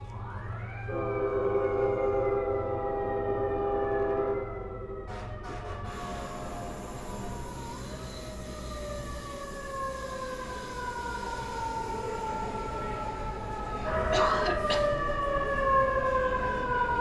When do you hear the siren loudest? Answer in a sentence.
The loudest moment of the siren is at 16 seconds.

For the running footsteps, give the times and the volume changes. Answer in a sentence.
The running footsteps can't be heard in this clip.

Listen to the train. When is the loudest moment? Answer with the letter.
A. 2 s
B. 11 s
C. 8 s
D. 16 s
A.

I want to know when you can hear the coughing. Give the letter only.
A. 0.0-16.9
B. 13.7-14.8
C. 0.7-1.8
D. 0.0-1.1
B.